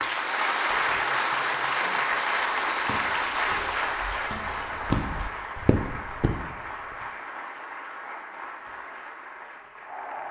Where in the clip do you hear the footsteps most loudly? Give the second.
5 s.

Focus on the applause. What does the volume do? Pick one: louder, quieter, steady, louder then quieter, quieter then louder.
quieter.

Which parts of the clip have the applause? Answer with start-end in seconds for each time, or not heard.
0.0-10.2.